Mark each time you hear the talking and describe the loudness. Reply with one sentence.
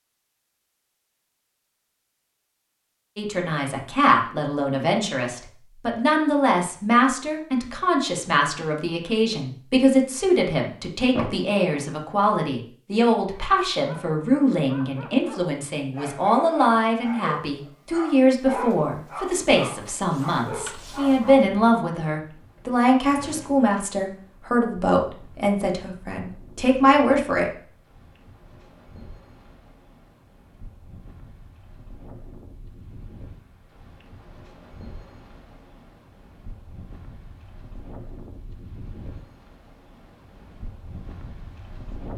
You can hear the talking from 3.1 to 27.5 s, at a steady volume.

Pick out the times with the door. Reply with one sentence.
You can hear the door from 11.1 to 11.8 s and from 22.6 to 23.8 s.